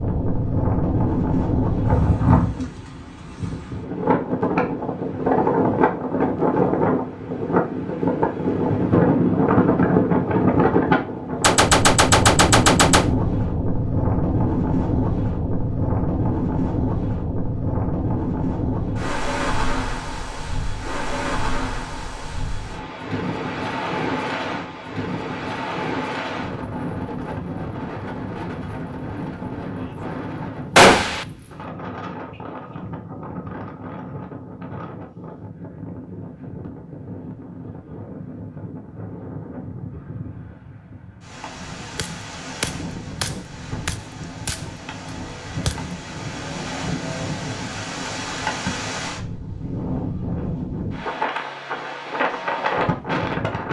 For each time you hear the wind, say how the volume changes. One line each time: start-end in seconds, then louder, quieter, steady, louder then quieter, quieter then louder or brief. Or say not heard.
0.0-53.6 quieter then louder.